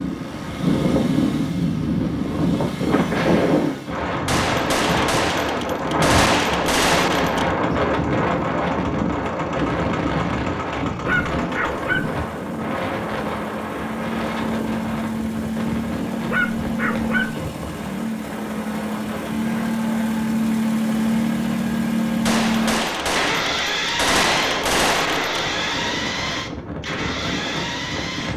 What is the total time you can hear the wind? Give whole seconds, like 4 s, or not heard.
28 s.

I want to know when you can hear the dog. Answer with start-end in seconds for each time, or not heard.
11.1-12.2, 16.3-17.5.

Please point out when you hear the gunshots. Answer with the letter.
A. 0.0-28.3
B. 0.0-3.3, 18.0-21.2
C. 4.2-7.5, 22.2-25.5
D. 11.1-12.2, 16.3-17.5
C.